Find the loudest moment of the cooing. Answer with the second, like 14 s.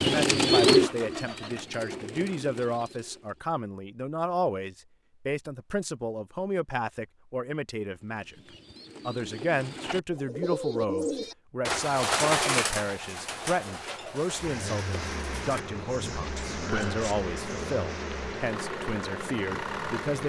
1 s.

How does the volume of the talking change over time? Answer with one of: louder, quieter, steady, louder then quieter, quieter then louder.
steady.